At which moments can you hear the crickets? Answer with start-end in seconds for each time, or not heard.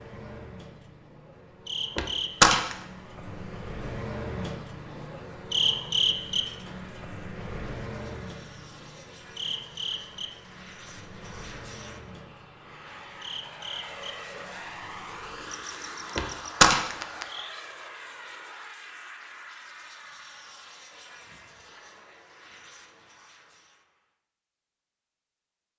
0.0-17.6.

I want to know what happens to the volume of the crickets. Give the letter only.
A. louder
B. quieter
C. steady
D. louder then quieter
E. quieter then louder
D.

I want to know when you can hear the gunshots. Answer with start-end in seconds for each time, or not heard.
1.9-2.8, 16.1-16.9.